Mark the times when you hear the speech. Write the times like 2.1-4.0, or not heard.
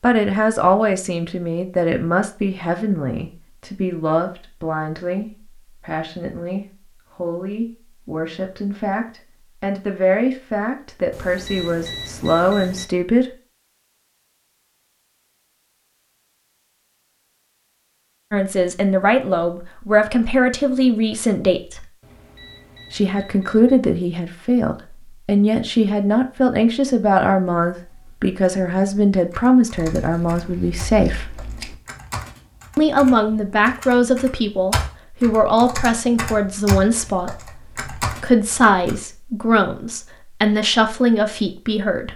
0.0-13.2, 18.3-21.9, 22.9-31.2, 32.8-42.1.